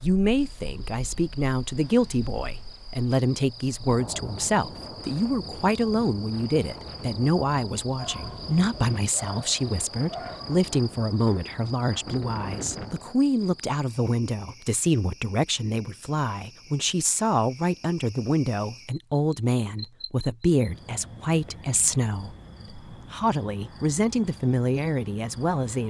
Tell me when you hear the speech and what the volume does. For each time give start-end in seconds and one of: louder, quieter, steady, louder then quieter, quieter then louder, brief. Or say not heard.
0.0-25.8 steady.